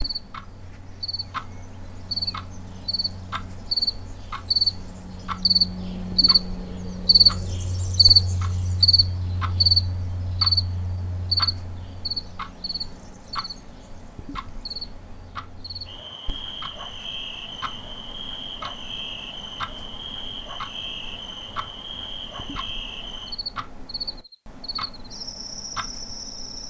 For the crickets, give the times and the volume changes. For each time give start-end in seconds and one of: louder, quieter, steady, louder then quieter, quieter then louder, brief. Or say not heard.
0.0-26.6 louder then quieter.